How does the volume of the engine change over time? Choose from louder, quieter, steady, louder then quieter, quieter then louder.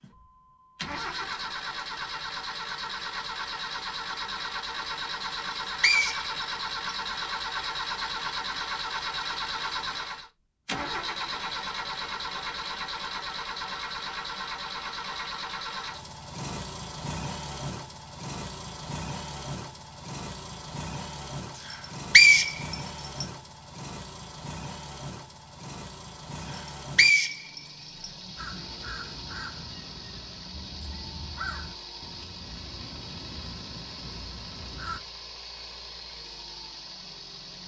quieter.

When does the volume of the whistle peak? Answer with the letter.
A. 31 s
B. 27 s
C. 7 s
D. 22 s
D.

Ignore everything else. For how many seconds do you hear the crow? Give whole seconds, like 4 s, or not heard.
7 s.